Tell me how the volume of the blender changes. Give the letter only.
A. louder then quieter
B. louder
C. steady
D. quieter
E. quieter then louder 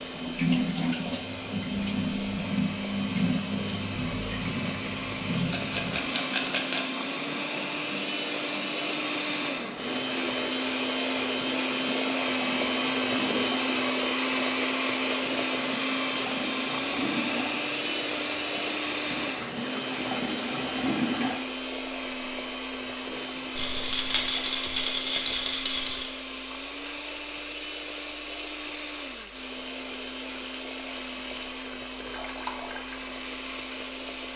A.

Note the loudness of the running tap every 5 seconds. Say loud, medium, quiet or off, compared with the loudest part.
loud, medium, medium, medium, loud, medium, medium.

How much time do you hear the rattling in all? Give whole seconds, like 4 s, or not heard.
4 s.